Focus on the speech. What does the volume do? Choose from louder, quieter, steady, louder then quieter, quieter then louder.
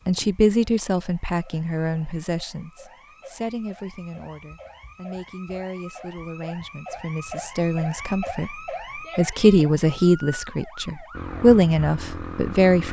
quieter then louder.